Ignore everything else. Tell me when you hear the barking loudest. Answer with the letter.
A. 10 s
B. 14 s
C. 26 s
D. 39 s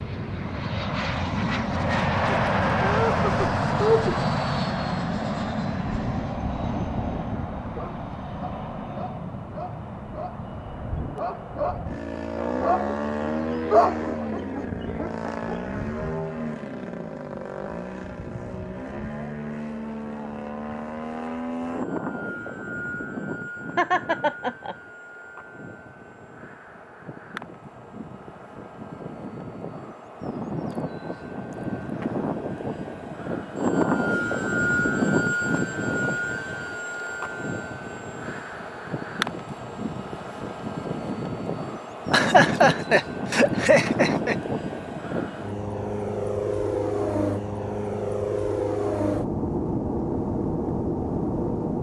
B.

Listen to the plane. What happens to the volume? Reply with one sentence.
The loudness of the plane goes down, then up.